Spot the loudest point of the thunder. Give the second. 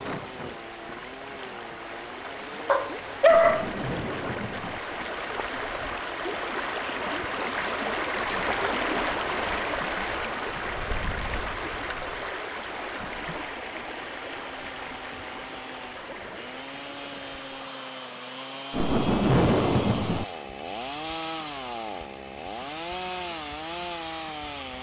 19 s.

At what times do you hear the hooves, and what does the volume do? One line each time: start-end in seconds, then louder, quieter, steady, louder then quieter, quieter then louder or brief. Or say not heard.
not heard.